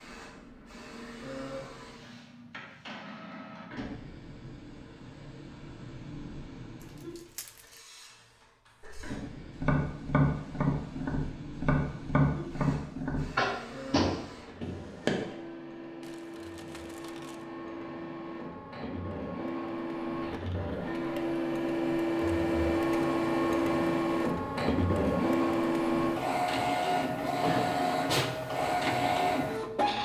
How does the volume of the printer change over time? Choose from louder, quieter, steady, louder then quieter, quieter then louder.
louder.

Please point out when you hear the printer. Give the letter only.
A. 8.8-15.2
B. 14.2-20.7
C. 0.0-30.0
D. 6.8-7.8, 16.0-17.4
C.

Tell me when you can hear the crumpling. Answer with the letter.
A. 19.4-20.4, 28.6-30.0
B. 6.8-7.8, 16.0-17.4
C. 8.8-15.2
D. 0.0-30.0
B.